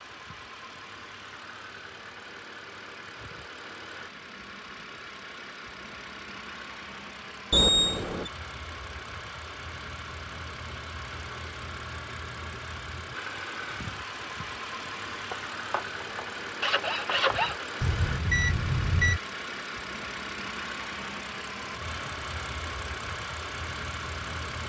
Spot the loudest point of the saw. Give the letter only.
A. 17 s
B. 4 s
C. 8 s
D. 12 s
A.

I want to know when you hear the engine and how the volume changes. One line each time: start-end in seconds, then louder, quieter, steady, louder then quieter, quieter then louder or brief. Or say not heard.
0.0-24.6 louder.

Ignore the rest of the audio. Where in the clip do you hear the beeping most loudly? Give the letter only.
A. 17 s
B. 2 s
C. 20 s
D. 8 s
D.